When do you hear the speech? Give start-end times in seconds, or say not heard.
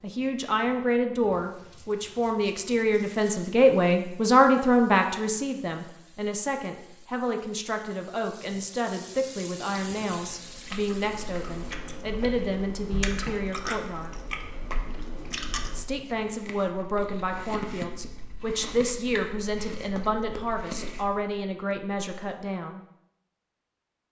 0.0-14.2, 15.8-22.8.